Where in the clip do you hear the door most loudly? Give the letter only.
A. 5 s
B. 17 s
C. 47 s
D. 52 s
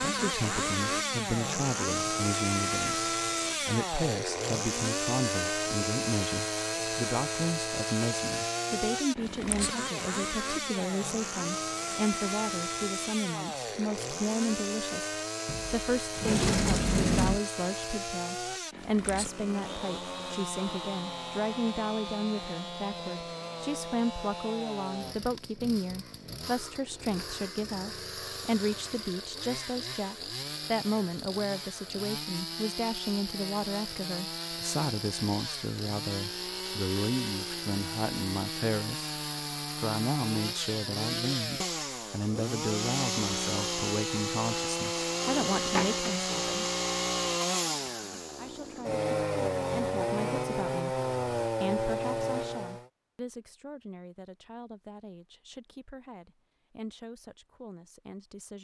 B.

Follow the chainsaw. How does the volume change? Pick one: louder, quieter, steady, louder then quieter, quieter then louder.
quieter then louder.